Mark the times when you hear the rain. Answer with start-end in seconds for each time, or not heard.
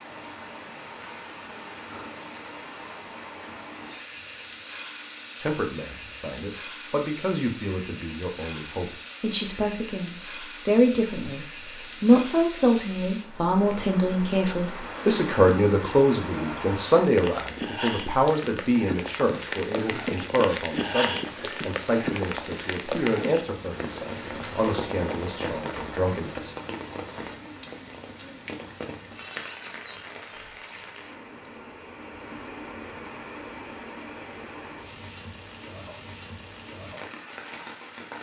0.0-38.1.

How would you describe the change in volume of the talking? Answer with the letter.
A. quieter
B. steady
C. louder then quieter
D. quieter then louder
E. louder
C.